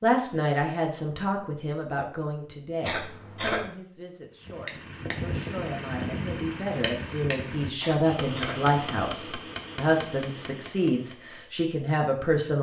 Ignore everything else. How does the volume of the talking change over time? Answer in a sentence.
The volume of the talking goes down, then up.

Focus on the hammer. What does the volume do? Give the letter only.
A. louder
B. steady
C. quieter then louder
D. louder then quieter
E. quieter
E.